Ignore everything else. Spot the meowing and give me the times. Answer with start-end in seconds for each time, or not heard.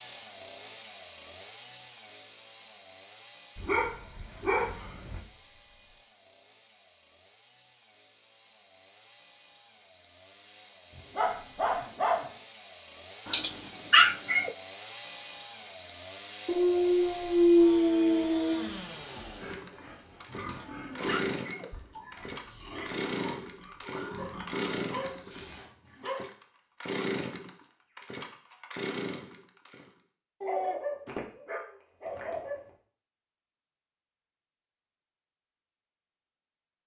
13.2-14.6, 20.4-22.0.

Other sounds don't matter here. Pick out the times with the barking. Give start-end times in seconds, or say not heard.
3.5-5.2, 11.2-12.2, 16.4-18.6, 24.1-26.2, 30.4-32.5.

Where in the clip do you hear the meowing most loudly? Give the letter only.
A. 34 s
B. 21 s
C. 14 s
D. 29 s
C.